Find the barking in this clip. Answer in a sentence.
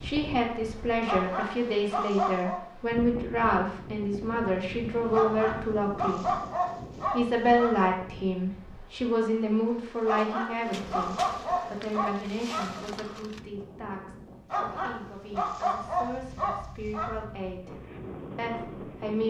The barking can be heard from 1.1 to 2.6 s, from 5.1 to 7.9 s, from 10.1 to 12.8 s and from 14.5 to 17.2 s.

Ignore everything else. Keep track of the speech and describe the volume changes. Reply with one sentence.
The volume of the speech goes down.